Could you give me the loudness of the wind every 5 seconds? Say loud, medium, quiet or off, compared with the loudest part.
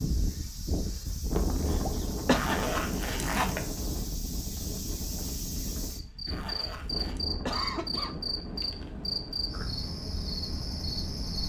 loud, medium, medium.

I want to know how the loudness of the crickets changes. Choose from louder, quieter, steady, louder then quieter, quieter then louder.
louder.